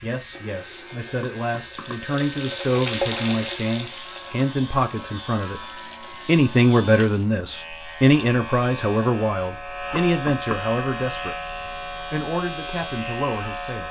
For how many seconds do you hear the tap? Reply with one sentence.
The tap can be heard for 7 seconds in total.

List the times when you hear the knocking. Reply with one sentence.
The knocking can be heard from 1.2 to 2.0 s and from 9.9 to 10.6 s.